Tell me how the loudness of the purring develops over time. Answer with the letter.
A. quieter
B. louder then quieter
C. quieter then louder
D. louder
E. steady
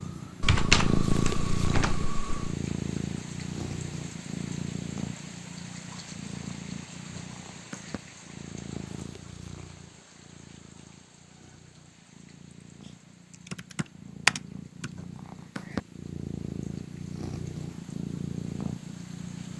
C.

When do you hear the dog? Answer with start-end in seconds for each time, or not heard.
not heard.